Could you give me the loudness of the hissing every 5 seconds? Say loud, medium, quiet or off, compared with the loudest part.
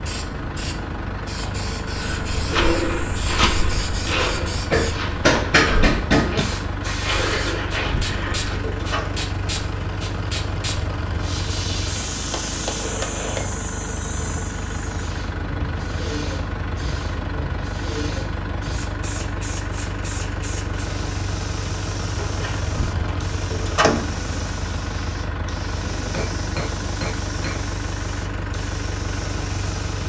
loud, loud, loud, loud, medium, medium.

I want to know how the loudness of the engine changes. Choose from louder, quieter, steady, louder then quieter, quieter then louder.
steady.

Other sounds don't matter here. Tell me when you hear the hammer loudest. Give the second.
5 s.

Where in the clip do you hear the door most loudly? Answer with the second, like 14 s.
24 s.